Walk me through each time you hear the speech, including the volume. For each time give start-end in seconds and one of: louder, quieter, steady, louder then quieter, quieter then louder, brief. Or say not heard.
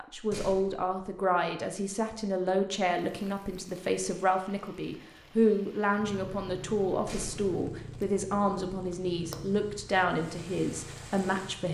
0.0-11.6 steady.